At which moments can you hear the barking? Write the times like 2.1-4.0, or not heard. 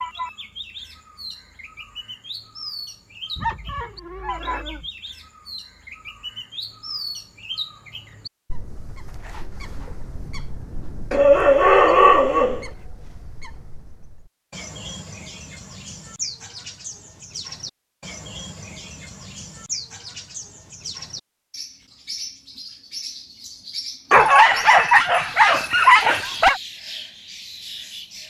3.4-4.8, 11.1-12.7, 24.1-26.6.